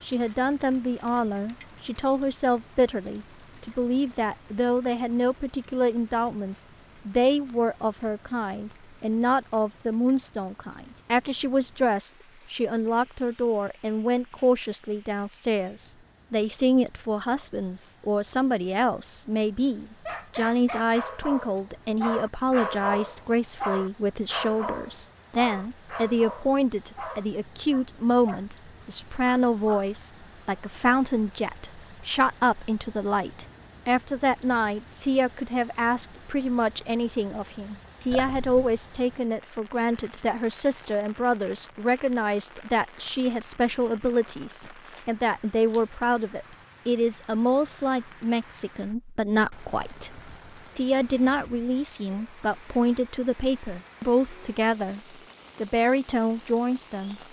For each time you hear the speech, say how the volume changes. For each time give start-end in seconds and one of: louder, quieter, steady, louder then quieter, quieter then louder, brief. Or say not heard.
0.0-55.0 steady
55.6-57.2 brief.